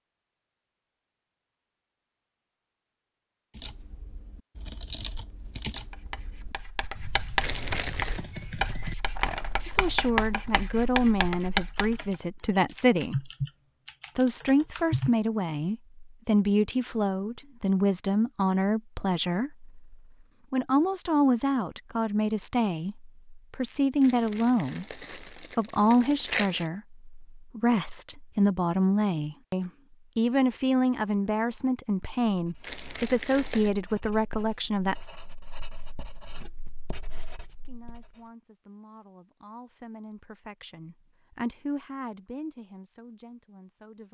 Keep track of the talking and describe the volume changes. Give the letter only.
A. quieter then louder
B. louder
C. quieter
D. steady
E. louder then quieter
C.